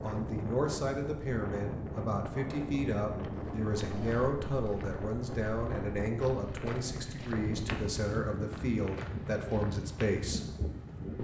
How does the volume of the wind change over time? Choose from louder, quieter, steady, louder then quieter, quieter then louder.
steady.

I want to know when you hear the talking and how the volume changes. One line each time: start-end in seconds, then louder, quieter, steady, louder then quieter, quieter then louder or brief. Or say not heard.
0.0-10.4 steady.